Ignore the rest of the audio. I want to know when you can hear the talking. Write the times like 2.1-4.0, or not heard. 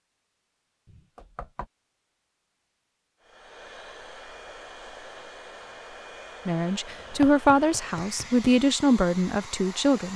6.5-10.1.